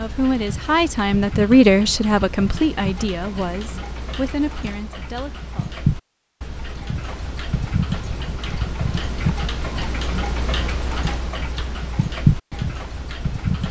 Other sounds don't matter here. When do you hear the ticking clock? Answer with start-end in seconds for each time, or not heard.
0.0-13.6.